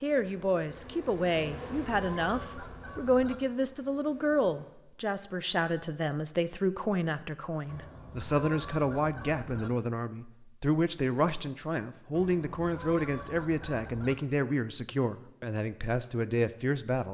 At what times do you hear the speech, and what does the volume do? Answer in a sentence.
You can hear the speech from 0.0 to 17.1 s, at a steady volume.